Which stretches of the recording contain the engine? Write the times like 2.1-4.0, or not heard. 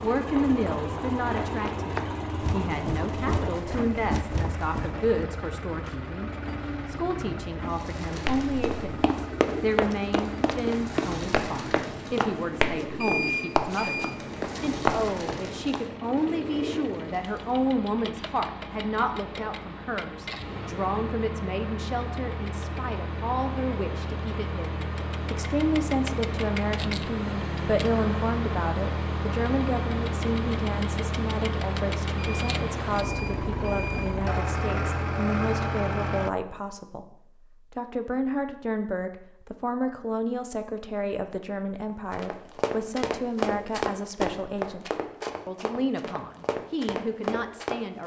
0.0-36.3.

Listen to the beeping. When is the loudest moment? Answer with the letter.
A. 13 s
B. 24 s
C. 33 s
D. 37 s
A.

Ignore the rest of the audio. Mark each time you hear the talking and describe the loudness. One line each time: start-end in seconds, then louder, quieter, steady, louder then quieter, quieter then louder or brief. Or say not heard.
0.0-48.0 steady.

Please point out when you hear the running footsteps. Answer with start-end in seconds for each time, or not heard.
0.0-5.1, 8.2-15.8, 42.1-48.0.